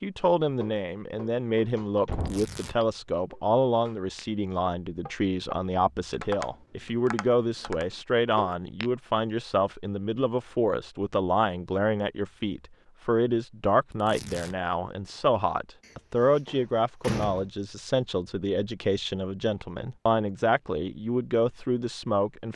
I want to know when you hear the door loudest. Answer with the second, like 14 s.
17 s.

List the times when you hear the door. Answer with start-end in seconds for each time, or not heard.
1.8-2.5, 15.8-17.5.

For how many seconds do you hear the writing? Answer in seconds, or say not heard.
not heard.